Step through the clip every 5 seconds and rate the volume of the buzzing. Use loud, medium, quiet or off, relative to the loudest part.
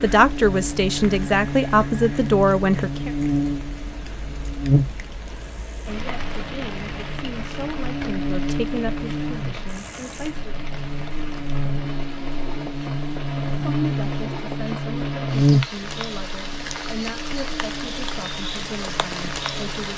loud, medium, loud, loud.